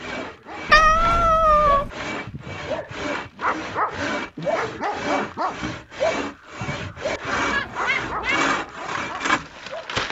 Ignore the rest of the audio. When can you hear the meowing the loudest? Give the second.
1 s.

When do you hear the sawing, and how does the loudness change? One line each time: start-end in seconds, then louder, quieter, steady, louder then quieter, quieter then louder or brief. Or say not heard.
0.0-10.0 louder.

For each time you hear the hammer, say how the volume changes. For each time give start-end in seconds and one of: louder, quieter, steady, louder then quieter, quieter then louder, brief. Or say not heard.
not heard.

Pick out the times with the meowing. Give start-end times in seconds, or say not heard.
0.7-1.9, 7.5-8.4.